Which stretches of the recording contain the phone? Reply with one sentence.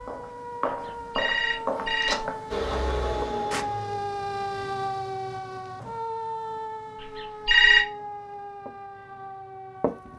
The phone can be heard from 0.8 to 2.3 s and from 7.0 to 7.8 s.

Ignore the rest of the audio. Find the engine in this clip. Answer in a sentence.
The engine can be heard from 2.5 to 4.7 s.